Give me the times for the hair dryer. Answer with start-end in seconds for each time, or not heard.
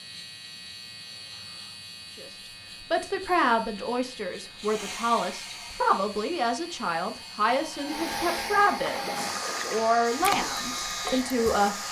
4.6-11.8.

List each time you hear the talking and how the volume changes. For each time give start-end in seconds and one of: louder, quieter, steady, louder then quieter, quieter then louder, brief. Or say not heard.
2.1-11.8 steady.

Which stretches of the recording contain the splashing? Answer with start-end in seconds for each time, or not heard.
8.8-11.8.